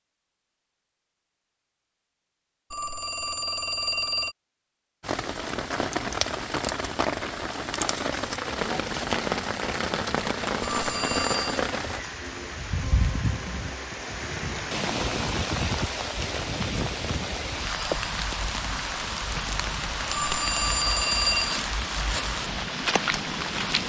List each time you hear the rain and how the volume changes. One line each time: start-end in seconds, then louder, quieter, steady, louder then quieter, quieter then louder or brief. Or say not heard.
5.0-23.8 steady.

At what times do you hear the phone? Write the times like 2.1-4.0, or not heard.
2.7-4.3, 10.6-11.7, 20.1-21.6.